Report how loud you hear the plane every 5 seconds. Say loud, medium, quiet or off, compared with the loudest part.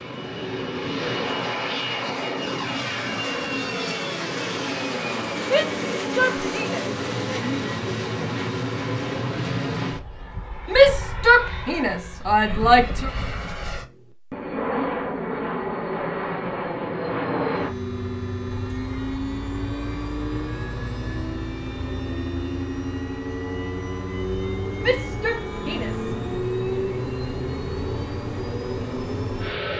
loud, loud, medium, loud, loud, loud.